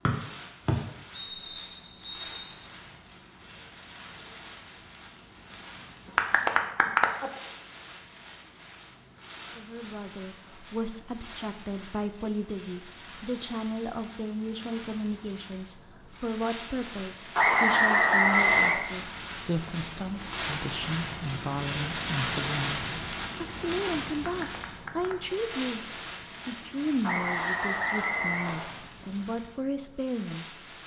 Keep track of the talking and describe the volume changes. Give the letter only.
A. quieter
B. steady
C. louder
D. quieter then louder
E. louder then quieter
B.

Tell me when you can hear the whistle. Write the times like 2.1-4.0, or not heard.
0.1-2.5, 17.4-18.8, 27.0-28.7.